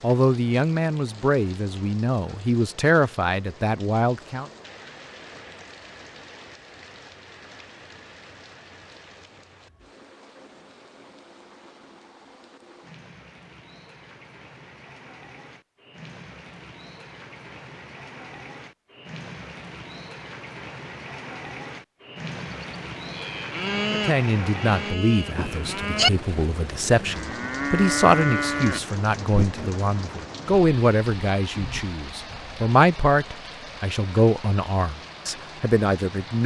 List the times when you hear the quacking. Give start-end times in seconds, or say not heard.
not heard.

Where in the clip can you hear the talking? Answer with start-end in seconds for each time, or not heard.
0.0-4.5, 23.9-36.4.